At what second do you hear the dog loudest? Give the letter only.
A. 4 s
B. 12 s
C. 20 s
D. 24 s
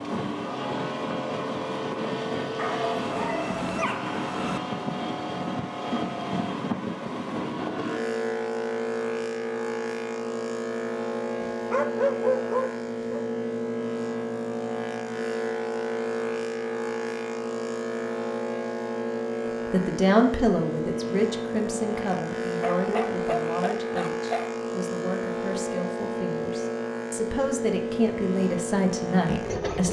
B.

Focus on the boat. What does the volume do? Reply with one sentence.
The loudness of the boat stays about the same.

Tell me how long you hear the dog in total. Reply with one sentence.
You can hear the dog for 6 seconds altogether.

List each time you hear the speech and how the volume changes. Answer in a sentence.
The speech can be heard from 19.7 to 29.8 s, getting quieter then louder.